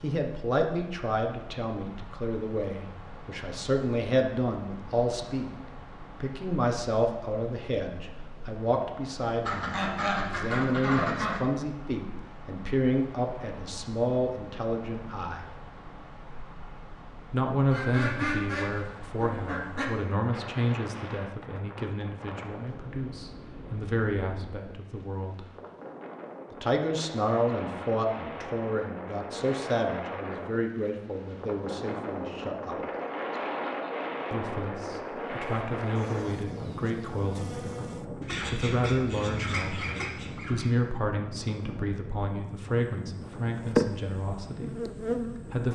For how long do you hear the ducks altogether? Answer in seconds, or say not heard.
7 s.